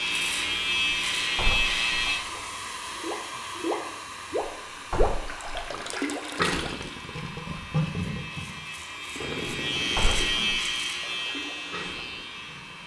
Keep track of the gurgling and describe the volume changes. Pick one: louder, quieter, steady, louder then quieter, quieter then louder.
quieter.